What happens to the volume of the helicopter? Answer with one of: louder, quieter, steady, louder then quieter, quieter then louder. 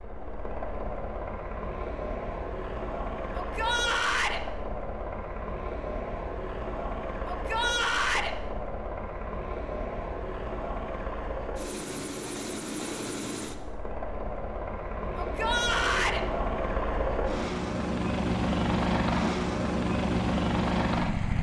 louder.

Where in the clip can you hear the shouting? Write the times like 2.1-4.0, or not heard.
3.4-4.4, 7.2-8.3, 15.2-16.2.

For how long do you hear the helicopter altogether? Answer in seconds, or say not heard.
21 s.